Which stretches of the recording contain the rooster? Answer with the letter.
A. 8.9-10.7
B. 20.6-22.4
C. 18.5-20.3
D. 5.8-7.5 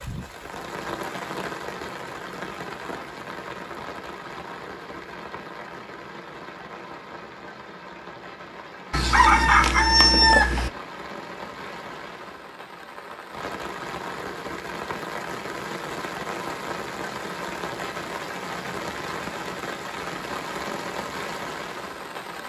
A.